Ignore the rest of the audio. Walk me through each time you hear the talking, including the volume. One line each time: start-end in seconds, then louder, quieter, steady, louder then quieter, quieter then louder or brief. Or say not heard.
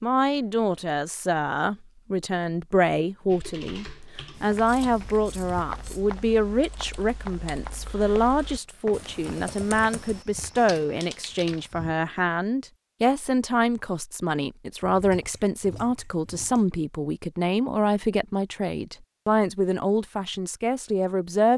0.0-21.5 steady.